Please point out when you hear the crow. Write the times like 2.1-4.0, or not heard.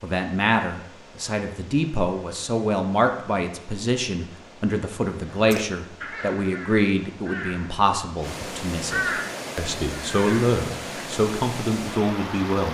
5.2-7.8, 8.4-10.9.